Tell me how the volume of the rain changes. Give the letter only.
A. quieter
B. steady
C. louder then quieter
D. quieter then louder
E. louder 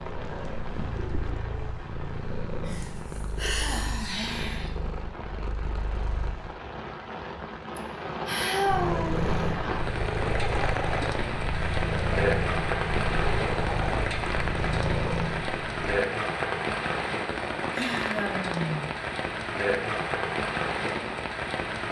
E.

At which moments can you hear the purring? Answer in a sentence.
The purring can be heard from 0.0 to 6.5 s and from 8.7 to 16.0 s.